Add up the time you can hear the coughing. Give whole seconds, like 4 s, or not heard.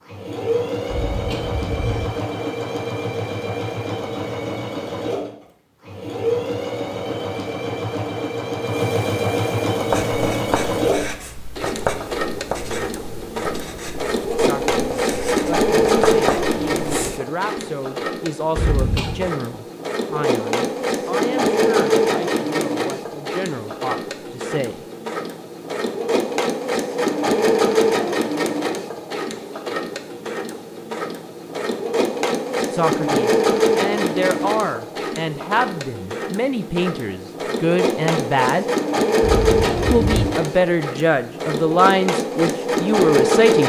3 s.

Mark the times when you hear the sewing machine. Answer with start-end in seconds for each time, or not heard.
0.1-43.6.